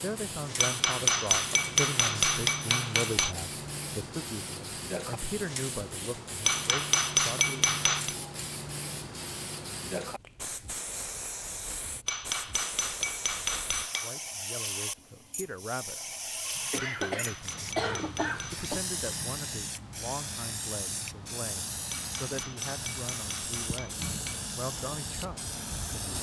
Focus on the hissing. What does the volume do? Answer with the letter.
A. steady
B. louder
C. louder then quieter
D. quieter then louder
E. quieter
A.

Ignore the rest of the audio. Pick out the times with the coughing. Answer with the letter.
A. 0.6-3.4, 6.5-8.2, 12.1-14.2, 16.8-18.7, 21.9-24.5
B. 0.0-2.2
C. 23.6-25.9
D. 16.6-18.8
D.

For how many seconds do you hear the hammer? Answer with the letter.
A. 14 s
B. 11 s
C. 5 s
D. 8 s
B.